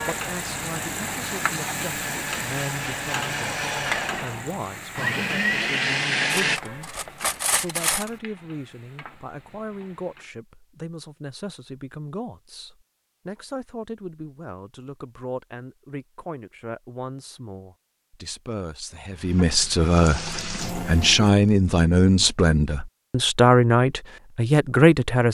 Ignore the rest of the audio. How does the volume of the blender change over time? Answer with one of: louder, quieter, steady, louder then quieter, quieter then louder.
louder.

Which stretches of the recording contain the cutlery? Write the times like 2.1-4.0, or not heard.
6.3-8.1.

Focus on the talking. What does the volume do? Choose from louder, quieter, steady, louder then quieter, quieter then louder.
louder.